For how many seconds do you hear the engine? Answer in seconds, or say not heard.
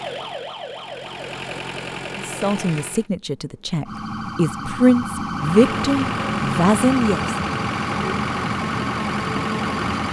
8 s.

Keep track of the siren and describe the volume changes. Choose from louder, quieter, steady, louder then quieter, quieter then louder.
louder.